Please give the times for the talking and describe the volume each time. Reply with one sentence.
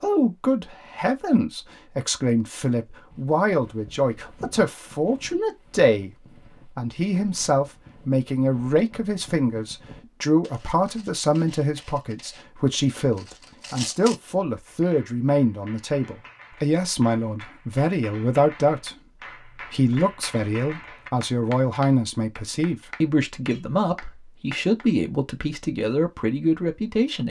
You can hear the talking from 0.0 to 27.2 s, at a steady volume.